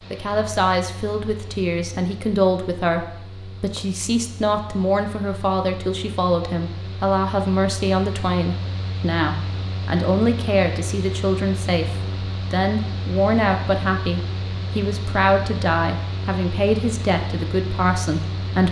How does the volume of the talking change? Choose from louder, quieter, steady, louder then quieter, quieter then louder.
steady.